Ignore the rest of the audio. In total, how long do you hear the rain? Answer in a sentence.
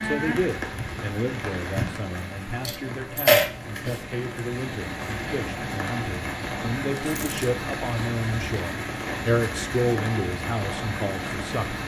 The rain can be heard for 12 seconds in total.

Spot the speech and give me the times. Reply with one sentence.
The speech can be heard from 0.0 to 11.8 s.